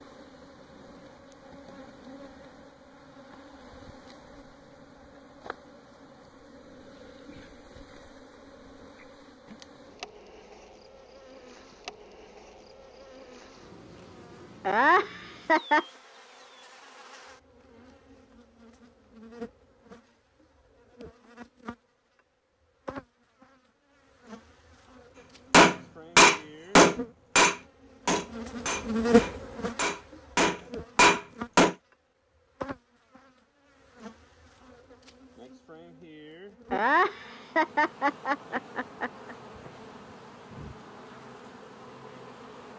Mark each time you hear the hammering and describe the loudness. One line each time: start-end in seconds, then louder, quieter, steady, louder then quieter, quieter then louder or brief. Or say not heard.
25.5-31.8 quieter then louder.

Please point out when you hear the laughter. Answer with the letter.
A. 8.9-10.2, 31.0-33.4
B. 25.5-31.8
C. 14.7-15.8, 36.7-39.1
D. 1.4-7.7
C.